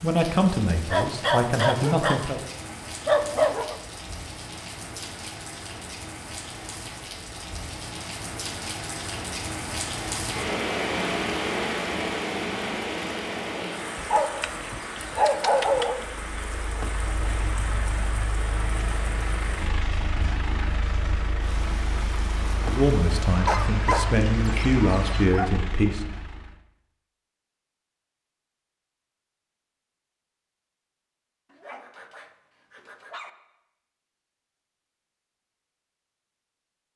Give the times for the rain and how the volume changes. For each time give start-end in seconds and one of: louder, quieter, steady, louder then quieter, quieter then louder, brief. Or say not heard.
0.0-25.2 louder then quieter.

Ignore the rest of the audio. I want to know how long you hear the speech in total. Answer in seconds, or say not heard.
6 s.